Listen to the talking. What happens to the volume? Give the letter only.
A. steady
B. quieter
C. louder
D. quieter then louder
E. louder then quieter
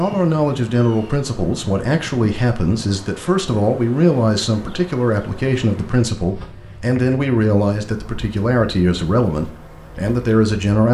A.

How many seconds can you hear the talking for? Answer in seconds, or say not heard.
11 s.